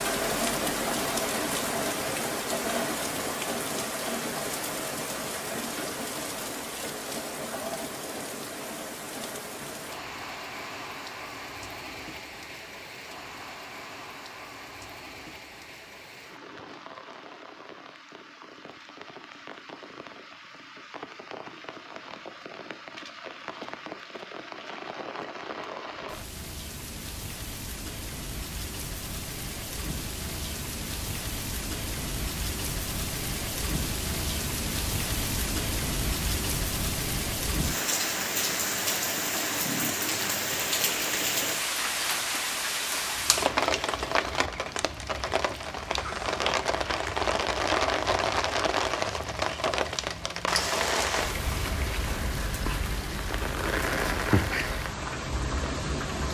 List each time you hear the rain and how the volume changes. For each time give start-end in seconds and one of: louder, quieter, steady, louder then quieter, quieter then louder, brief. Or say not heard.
0.0-56.2 quieter then louder.